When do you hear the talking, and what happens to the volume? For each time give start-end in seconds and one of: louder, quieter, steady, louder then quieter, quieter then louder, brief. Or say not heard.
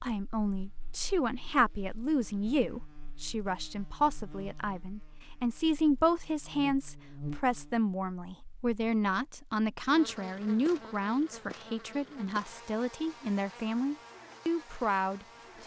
0.0-15.6 steady.